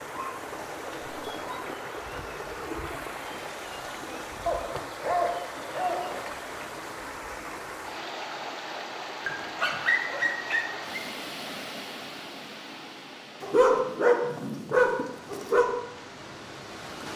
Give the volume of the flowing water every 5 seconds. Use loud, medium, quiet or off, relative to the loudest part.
loud, loud, loud, medium.